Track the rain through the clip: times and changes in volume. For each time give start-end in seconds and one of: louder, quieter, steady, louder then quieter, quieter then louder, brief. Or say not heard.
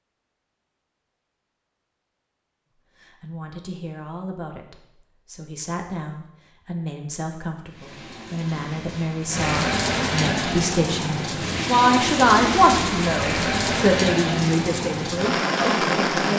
7.7-16.3 louder.